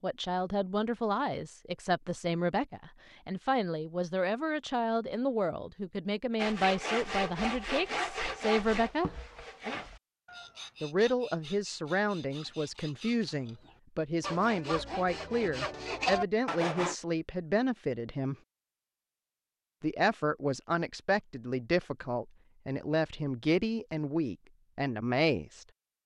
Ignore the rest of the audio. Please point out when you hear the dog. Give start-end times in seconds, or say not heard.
not heard.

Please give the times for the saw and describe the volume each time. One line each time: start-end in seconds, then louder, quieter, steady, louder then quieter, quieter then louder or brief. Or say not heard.
6.3-16.9 quieter then louder.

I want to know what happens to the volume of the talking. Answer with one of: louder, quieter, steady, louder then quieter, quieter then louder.
steady.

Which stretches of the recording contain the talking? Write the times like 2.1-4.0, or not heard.
0.0-9.1, 10.8-18.4, 19.8-25.6.